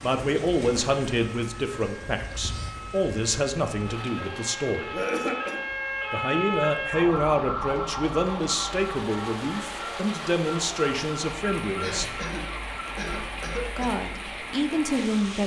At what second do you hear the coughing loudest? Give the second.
5 s.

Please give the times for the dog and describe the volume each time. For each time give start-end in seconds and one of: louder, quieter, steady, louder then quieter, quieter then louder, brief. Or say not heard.
not heard.